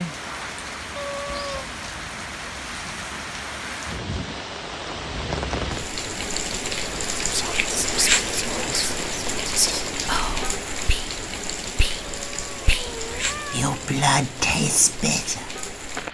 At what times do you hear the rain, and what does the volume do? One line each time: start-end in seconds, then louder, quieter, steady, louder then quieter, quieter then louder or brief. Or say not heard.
0.0-16.0 louder then quieter.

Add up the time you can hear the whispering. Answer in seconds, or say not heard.
8 s.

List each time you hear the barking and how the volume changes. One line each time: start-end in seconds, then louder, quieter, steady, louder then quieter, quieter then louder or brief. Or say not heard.
not heard.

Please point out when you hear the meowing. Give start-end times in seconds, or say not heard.
0.9-1.6, 12.1-13.8.